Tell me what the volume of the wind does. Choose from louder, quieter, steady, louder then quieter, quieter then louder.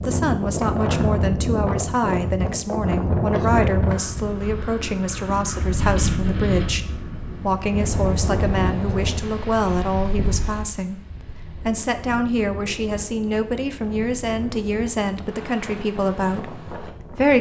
quieter.